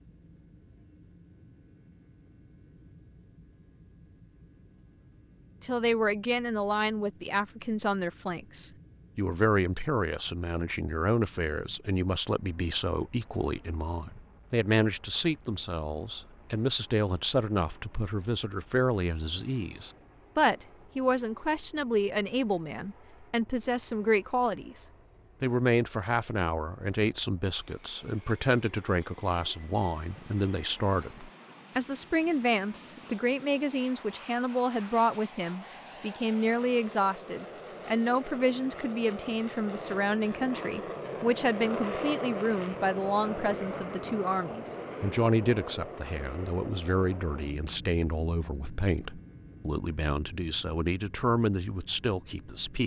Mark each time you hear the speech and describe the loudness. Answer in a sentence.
You can hear the speech from 5.6 to 52.8 s, at a steady volume.